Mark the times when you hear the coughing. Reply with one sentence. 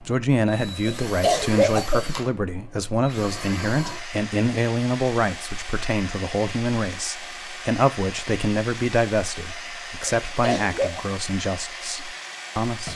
The coughing can be heard from 1.1 to 2.0 s and from 10.1 to 11.1 s.